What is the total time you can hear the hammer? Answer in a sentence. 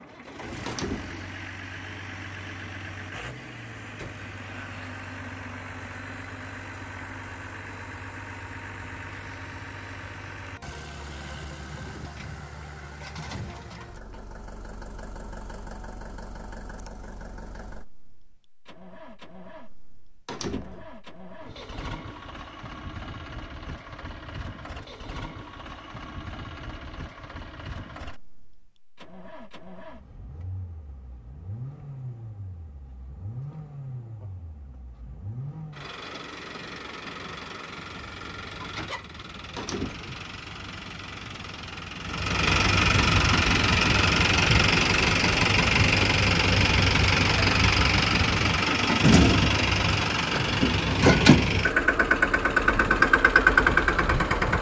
The hammer can't be heard in this clip.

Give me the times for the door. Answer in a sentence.
You can hear the door from 0.7 to 1.3 s, from 20.2 to 20.9 s and from 39.5 to 40.1 s.